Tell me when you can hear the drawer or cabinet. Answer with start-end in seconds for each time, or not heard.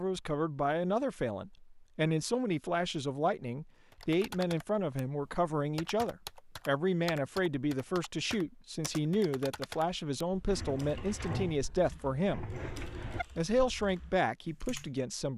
10.4-13.2.